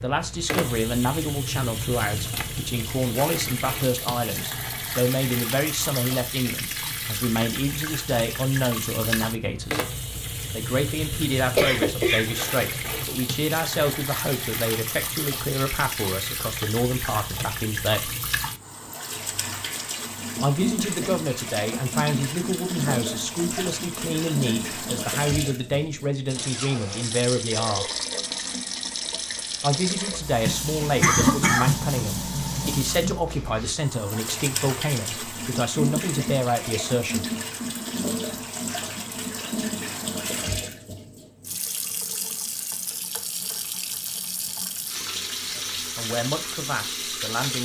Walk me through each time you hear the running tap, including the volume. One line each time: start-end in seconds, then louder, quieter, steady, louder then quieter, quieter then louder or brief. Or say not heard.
0.0-47.5 steady.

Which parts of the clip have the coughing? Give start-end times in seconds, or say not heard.
11.6-12.9, 31.0-31.8.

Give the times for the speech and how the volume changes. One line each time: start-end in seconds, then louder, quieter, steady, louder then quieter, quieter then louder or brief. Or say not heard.
0.0-9.8 steady
10.5-18.1 steady
20.4-27.9 steady
29.6-37.2 steady
45.5-47.5 brief.